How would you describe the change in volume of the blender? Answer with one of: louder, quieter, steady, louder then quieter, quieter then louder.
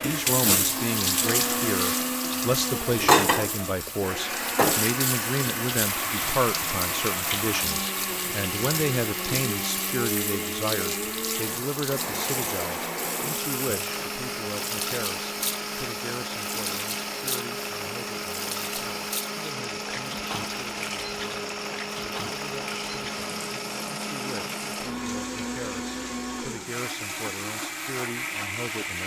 steady.